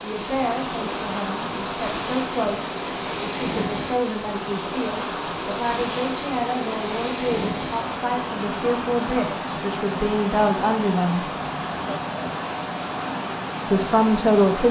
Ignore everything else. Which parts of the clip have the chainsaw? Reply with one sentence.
The chainsaw can't be heard in this clip.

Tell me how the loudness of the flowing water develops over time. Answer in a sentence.
The volume of the flowing water stays about the same.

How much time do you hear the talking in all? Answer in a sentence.
The talking can be heard for 12 seconds in total.